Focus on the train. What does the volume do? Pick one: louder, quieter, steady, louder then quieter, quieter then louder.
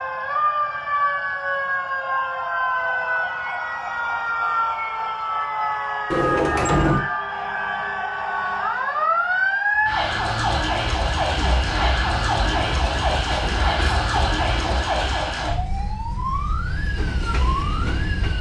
quieter then louder.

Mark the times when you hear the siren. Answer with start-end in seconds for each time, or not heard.
0.0-18.3.